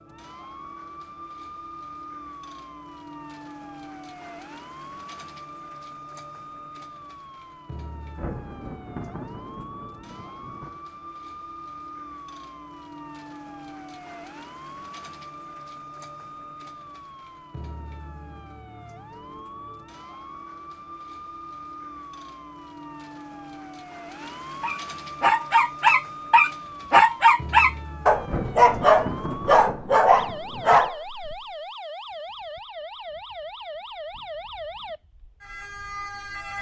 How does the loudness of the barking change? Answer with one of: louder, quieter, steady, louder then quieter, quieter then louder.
steady.